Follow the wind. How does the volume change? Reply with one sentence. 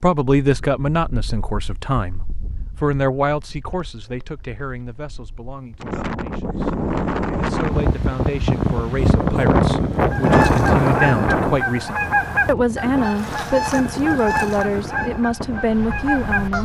The volume of the wind goes up, then down.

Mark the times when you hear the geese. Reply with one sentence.
You can hear the geese from 10.0 to 16.5 s.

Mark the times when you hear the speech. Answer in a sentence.
The speech can be heard from 0.0 to 2.2 s, from 2.8 to 6.7 s and from 7.3 to 16.5 s.